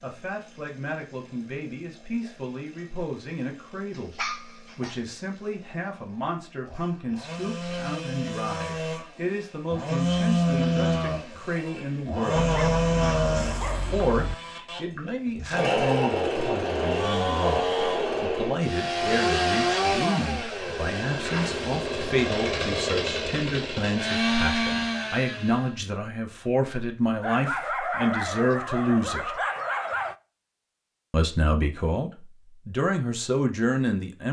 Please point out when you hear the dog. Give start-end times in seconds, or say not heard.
4.0-5.0, 12.3-14.3, 27.2-30.1.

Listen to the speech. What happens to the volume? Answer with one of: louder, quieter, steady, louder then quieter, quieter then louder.
louder.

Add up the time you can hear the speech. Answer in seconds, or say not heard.
31 s.